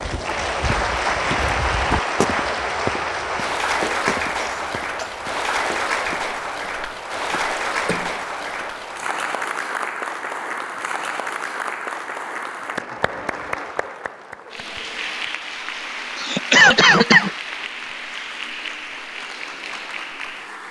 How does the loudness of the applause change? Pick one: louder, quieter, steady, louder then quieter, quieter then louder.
quieter.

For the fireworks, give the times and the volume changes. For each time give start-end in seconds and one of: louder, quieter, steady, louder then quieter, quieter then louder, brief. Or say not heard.
not heard.